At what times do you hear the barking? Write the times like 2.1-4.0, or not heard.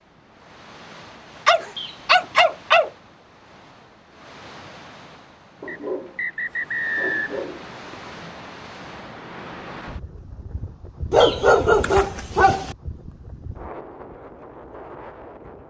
1.4-2.9, 5.6-8.0, 11.1-12.8.